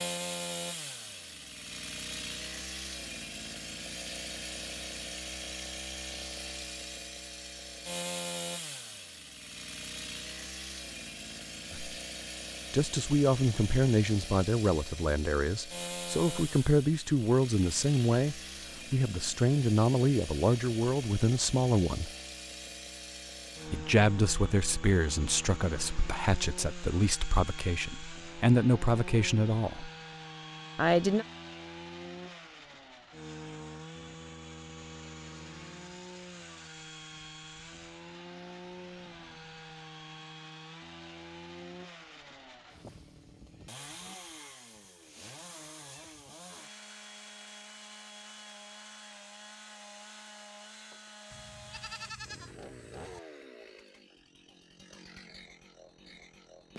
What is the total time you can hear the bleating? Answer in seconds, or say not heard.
2 s.